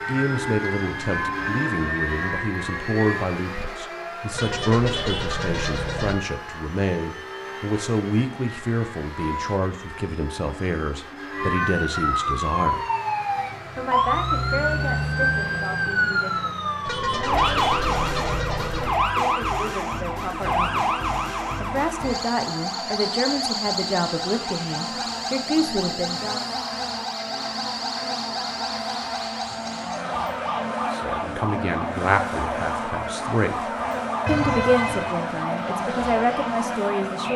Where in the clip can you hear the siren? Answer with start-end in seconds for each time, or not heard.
0.0-3.2, 11.3-37.3.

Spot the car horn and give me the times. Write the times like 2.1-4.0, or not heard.
4.3-6.2, 16.9-18.9, 34.2-35.1.